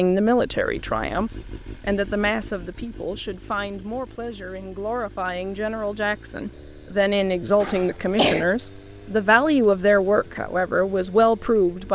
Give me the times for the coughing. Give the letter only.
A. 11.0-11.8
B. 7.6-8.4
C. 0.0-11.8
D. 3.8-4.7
B.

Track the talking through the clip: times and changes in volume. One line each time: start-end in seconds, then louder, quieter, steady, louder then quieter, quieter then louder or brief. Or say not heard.
0.0-11.8 quieter then louder.